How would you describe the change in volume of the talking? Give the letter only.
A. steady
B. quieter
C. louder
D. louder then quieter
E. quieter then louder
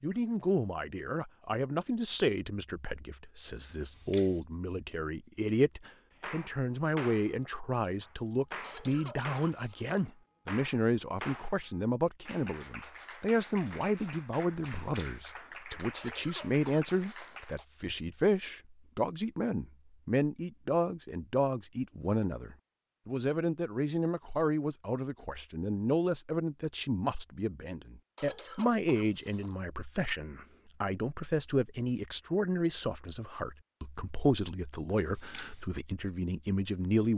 A.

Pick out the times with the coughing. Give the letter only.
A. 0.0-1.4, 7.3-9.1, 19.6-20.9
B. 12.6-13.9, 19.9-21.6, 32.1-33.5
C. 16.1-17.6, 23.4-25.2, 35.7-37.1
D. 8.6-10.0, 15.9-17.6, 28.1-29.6
D.